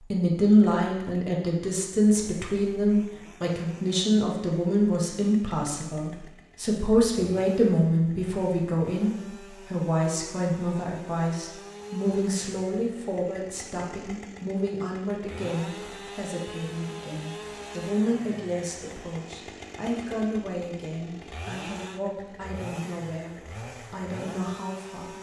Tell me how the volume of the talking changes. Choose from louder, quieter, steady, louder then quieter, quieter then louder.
quieter.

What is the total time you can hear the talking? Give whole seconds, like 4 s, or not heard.
25 s.